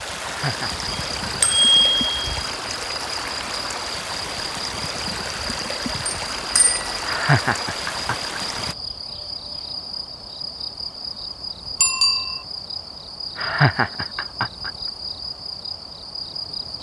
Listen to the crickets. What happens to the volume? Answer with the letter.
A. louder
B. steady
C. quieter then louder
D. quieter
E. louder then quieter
B.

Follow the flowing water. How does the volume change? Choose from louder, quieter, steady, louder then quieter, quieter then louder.
steady.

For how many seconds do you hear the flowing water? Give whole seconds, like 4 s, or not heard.
9 s.